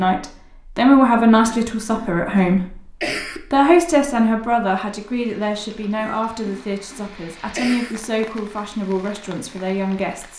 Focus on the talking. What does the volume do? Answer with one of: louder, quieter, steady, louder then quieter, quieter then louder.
quieter.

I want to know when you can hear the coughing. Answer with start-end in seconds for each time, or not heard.
1.4-3.4, 6.0-8.0.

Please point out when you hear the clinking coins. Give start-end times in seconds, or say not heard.
not heard.